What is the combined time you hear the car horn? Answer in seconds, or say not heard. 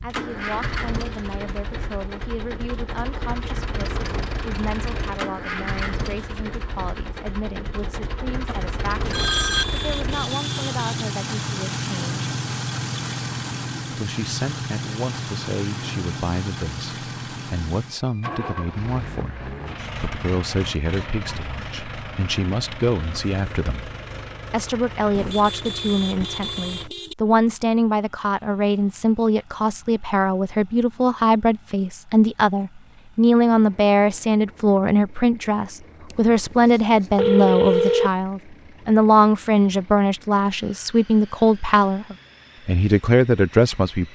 4 s.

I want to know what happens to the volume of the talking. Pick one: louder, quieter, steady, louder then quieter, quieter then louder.
louder.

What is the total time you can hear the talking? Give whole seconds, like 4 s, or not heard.
42 s.